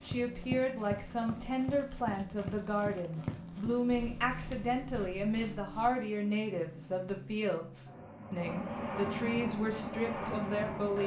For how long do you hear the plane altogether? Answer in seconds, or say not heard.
11 s.